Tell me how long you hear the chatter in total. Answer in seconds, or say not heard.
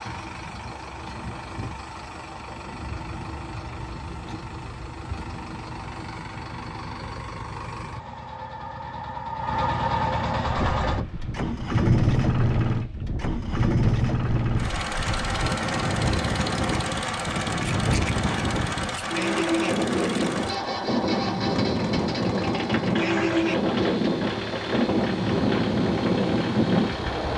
not heard.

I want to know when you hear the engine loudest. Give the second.
12 s.